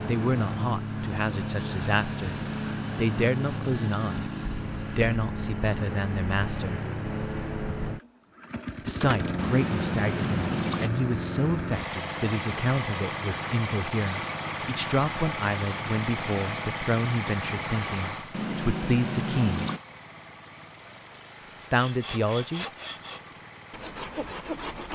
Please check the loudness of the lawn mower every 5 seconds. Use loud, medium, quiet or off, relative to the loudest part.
loud, loud, loud, loud, quiet.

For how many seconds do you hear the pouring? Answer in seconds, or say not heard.
3 s.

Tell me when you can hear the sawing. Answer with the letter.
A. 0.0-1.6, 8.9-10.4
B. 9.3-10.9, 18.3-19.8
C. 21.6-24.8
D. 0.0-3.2
C.